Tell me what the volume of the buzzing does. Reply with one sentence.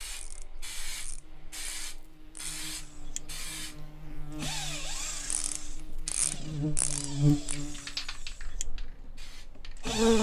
The loudness of the buzzing goes up, then down.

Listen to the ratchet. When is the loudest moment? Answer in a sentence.
The volume of the ratchet peaks at 6 seconds.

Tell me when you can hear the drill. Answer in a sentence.
The drill can be heard from 2.7 to 10.1 s.